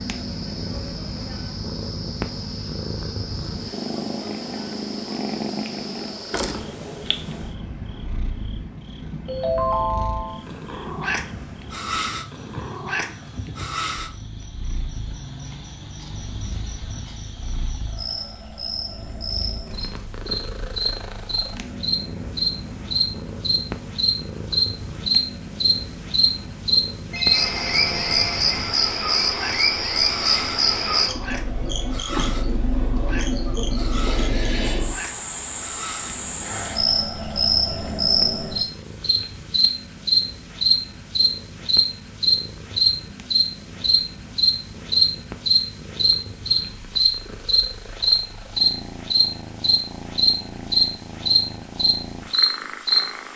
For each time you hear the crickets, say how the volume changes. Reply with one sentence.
The crickets can be heard from 0.0 to 53.3 s, getting louder.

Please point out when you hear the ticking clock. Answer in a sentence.
The ticking clock can't be heard in this clip.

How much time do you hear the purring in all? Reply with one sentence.
The purring can be heard for 53 seconds in total.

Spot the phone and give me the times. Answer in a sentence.
The phone can be heard from 9.2 to 10.4 s and from 27.1 to 28.4 s.